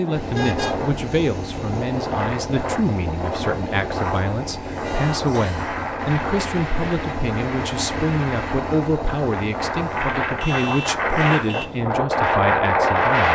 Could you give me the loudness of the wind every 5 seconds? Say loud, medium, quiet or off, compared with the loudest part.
medium, medium, loud.